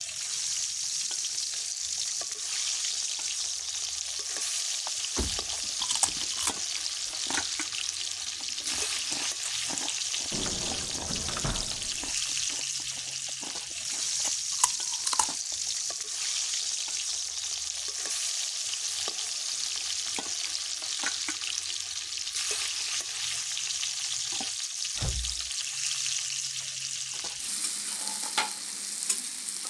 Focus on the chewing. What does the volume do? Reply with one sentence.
The volume of the chewing goes down, then up.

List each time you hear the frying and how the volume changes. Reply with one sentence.
The frying can be heard from 0.0 to 29.6 s, at a steady volume.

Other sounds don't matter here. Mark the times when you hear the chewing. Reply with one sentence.
You can hear the chewing from 4.8 to 15.7 s.